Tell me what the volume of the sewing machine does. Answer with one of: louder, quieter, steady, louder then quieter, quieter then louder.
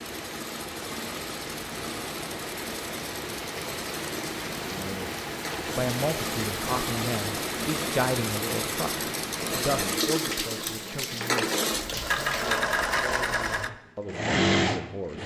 louder.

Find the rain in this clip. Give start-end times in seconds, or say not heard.
0.0-12.6.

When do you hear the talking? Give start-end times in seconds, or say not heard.
5.8-15.2.